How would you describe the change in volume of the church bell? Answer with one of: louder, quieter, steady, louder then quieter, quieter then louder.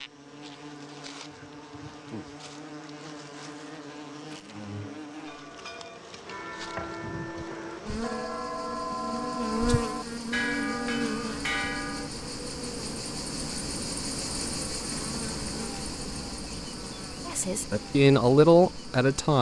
louder.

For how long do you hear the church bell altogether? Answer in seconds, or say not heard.
7 s.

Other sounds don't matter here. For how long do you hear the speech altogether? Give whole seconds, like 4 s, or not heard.
2 s.